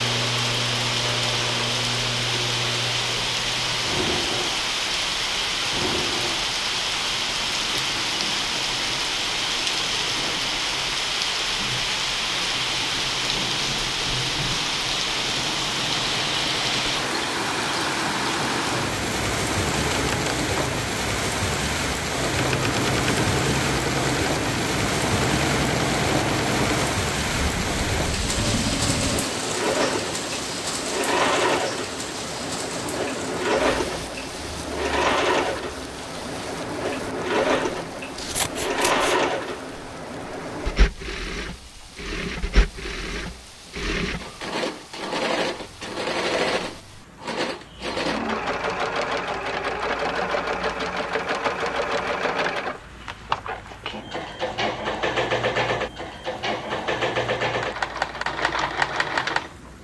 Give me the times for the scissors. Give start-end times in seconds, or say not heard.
38.1-39.1.